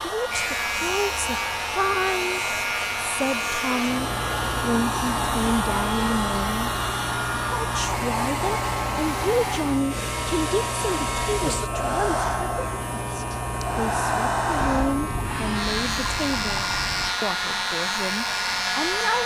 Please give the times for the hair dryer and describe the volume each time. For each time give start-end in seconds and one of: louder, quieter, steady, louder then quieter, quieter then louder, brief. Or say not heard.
0.0-19.2 steady.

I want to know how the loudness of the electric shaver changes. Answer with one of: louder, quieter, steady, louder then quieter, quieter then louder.
steady.